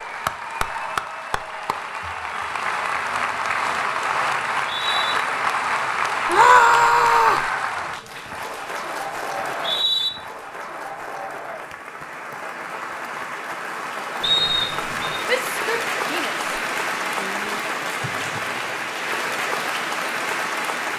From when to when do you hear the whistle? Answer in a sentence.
The whistle can be heard from 4.7 to 5.2 s, from 9.3 to 10.1 s and from 14.2 to 15.2 s.